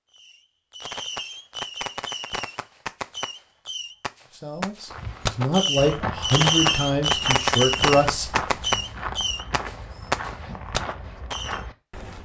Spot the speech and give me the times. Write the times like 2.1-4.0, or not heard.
4.3-8.8.